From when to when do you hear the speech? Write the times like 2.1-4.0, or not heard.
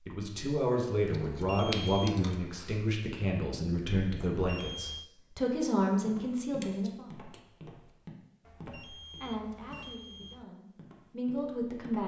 0.1-7.0, 9.2-12.0.